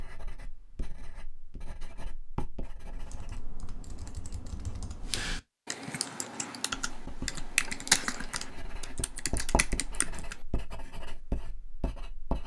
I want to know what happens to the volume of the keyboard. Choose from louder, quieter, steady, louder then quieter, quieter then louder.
louder then quieter.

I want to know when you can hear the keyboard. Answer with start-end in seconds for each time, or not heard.
2.9-10.4.